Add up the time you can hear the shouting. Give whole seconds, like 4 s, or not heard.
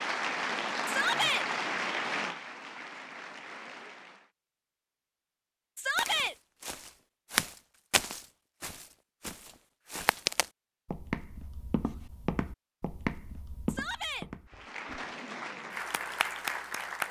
2 s.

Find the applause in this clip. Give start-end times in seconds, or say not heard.
0.0-4.3, 14.5-17.0.